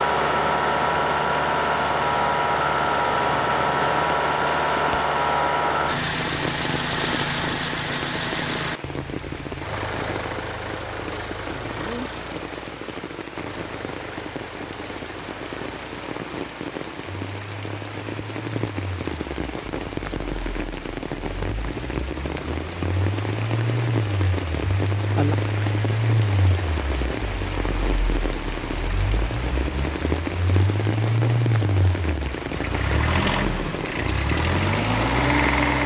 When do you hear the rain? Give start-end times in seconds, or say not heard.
0.0-35.8.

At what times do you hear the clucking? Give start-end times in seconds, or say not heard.
not heard.